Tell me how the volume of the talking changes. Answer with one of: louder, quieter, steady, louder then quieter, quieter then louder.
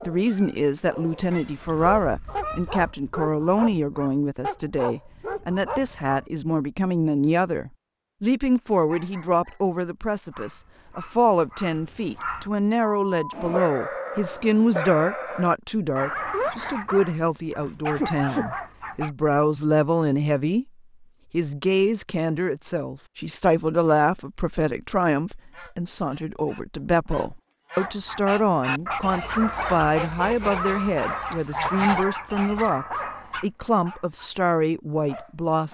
steady.